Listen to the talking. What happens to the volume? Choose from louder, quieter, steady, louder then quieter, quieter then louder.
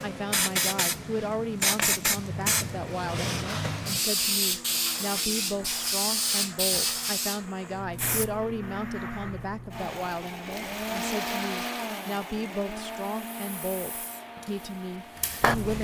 steady.